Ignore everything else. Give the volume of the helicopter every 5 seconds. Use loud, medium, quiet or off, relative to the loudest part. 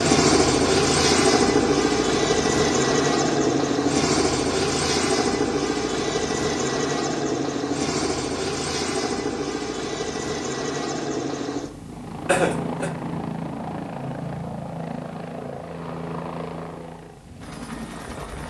loud, medium, medium, quiet.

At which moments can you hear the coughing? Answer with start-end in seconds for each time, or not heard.
12.2-12.9.